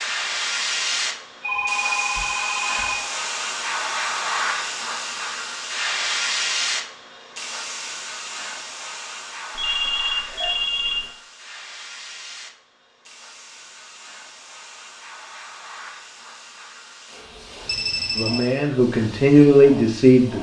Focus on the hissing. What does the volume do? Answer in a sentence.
The loudness of the hissing goes down.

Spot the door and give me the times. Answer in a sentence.
You can't hear the door here.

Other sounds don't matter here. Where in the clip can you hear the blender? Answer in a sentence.
The blender can't be heard in this clip.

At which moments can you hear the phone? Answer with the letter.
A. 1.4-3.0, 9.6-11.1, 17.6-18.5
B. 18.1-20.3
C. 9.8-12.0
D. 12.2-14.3
A.